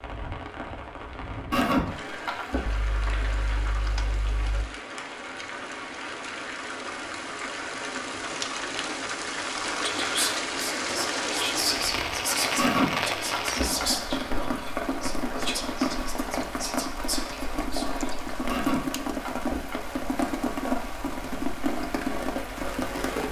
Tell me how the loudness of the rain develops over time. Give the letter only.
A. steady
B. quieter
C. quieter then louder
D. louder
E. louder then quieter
D.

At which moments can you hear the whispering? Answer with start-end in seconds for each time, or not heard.
9.7-18.4.